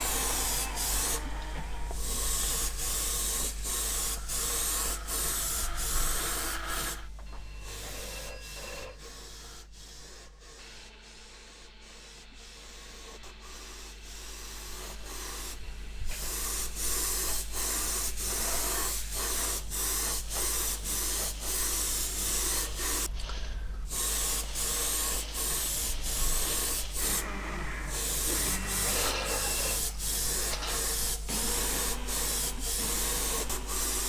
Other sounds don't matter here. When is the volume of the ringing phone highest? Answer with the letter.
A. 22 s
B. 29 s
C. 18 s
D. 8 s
B.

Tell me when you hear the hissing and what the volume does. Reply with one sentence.
You can hear the hissing from 0.0 to 34.0 s, getting quieter then louder.